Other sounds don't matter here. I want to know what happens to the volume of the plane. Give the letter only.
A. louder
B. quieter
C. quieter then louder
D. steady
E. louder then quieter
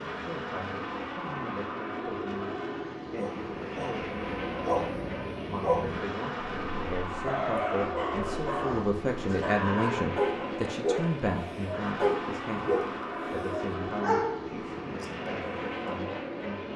D.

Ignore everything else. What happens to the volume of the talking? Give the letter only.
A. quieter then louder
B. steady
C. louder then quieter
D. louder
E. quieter
C.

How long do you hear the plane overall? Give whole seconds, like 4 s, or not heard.
17 s.